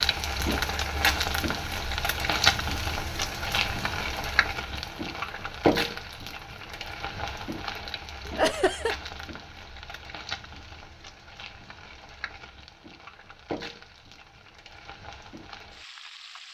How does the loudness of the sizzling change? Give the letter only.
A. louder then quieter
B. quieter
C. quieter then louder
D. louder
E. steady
B.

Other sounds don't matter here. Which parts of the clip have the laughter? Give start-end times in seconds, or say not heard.
8.2-8.9.